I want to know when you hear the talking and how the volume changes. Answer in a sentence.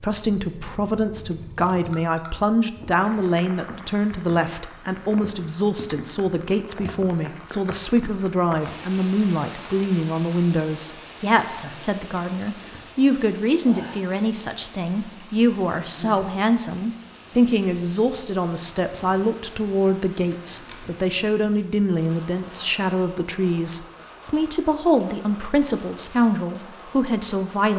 The talking can be heard from 0.0 to 27.7 s, at a steady volume.